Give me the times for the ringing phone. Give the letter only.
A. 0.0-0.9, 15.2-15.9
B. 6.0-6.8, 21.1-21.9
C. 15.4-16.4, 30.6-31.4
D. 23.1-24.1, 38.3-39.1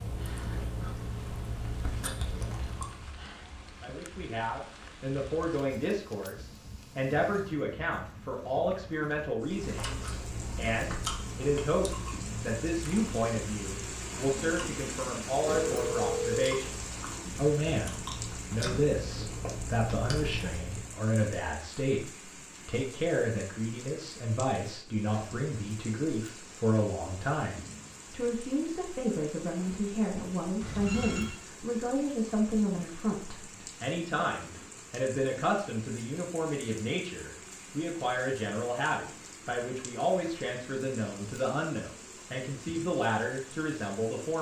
C.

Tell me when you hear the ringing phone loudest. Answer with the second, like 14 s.
16 s.